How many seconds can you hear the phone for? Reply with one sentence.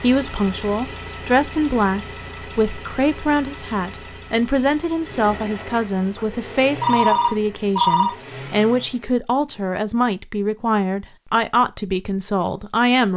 You can hear the phone for 2 seconds altogether.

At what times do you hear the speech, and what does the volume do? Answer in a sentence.
The speech can be heard from 0.0 to 13.1 s, at a steady volume.